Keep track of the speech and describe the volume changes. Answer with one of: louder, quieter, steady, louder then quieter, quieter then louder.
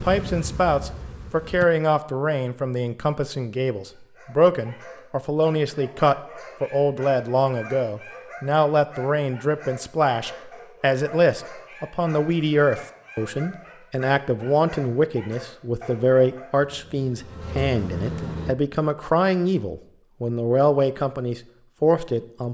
steady.